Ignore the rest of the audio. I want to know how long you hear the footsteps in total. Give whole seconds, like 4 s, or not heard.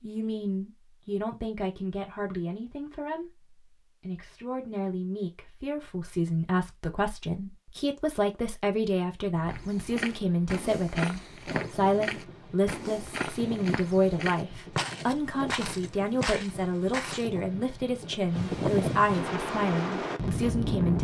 8 s.